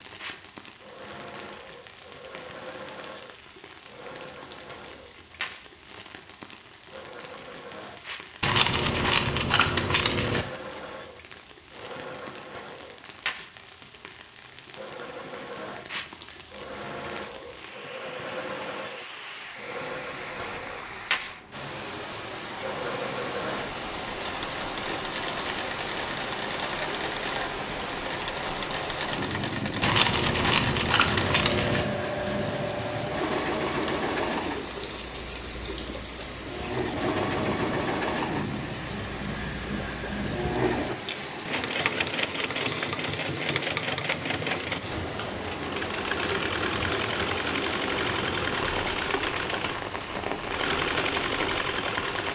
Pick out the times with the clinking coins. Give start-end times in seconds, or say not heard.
8.4-10.4, 29.8-31.9, 48.0-48.6.